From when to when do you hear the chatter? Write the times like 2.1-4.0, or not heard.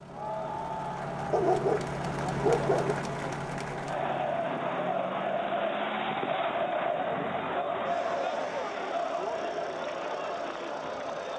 0.0-11.3.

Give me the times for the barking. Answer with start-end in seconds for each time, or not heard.
1.3-3.0.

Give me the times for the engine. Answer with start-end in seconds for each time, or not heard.
0.0-11.3.